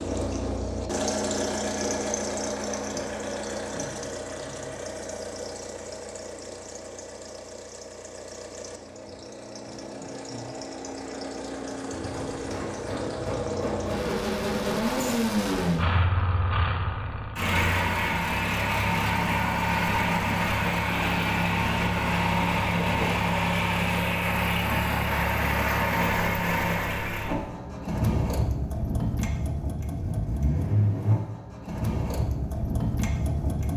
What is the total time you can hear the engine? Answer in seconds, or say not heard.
34 s.